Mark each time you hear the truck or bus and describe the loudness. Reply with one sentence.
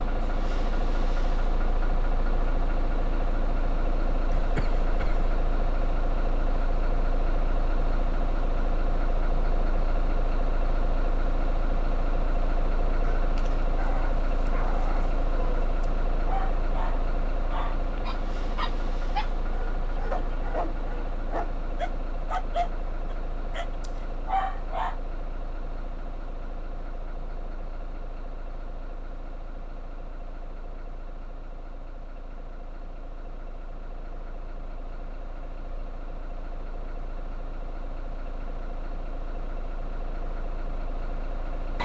You can hear the truck or bus from 0.0 to 41.8 s, getting quieter.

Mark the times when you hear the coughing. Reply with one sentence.
The coughing can be heard from 4.3 to 5.3 s.